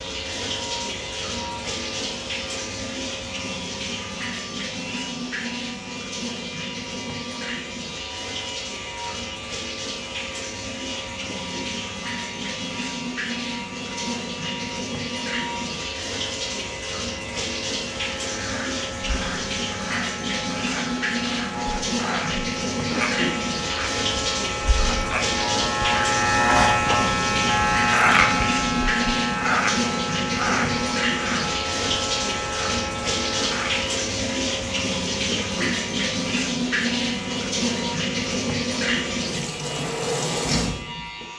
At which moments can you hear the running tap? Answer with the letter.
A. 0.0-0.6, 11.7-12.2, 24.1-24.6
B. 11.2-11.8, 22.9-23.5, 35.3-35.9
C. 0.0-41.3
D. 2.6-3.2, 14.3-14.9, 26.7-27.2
C.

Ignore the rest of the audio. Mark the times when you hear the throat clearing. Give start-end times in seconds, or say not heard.
11.2-11.8, 22.9-23.5, 35.3-35.9.